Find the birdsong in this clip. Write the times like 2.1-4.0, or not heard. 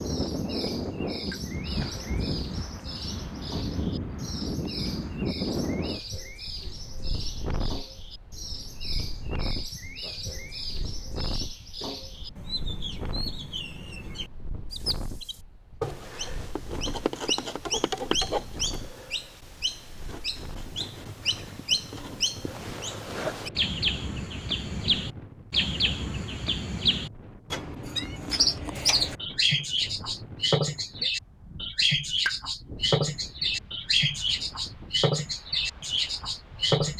0.0-36.9.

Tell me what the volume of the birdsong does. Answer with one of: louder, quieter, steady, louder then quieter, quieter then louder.
louder.